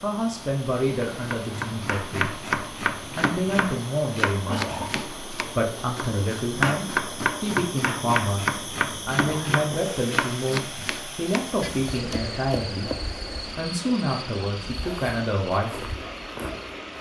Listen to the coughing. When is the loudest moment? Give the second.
5 s.